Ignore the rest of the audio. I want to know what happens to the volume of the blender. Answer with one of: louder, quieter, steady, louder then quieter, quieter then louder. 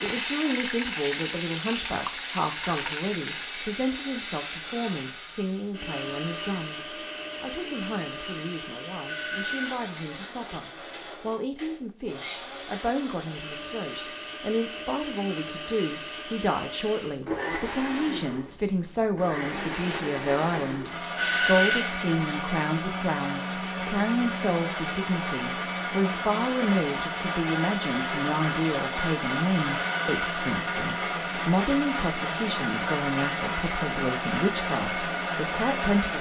louder.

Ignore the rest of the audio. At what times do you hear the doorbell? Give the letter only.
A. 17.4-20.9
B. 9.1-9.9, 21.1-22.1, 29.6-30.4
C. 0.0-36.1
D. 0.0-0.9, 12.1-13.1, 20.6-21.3
B.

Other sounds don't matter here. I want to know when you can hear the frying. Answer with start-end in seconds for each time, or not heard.
0.0-3.5.